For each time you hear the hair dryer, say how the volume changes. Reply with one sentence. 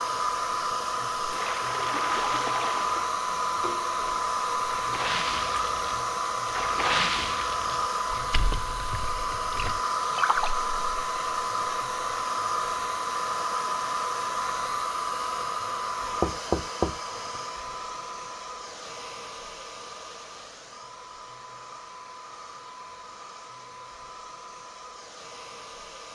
The hair dryer can be heard from 0.0 to 26.1 s, getting quieter.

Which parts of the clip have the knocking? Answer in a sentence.
The knocking can be heard from 16.2 to 17.4 s.